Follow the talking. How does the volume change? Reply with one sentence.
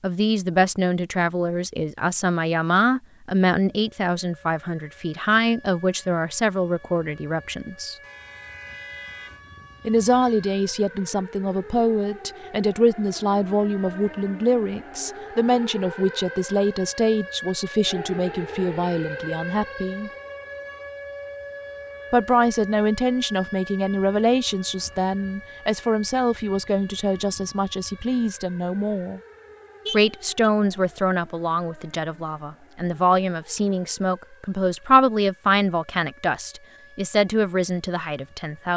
The loudness of the talking stays about the same.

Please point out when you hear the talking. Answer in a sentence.
You can hear the talking from 0.0 to 8.0 s, from 9.8 to 20.1 s, from 22.1 to 29.2 s and from 29.9 to 38.7 s.